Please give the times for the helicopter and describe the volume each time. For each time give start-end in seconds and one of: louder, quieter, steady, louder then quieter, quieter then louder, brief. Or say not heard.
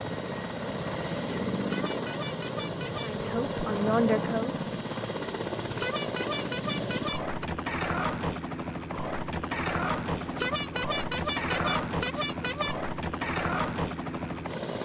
0.0-14.7 steady.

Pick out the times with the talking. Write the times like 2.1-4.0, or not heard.
2.9-4.6.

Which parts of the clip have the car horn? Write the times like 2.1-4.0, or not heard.
1.5-3.1, 5.6-7.5, 10.2-12.8.